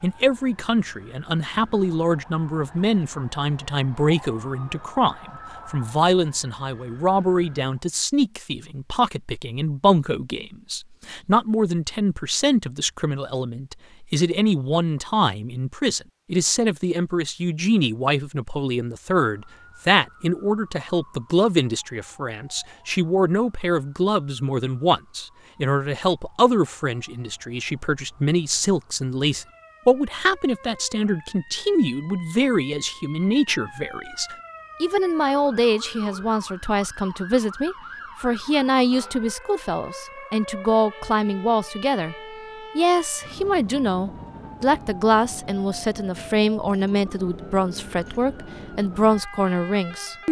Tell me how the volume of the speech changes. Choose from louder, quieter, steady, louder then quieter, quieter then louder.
steady.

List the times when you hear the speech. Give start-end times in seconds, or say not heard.
0.0-42.1, 42.8-50.2.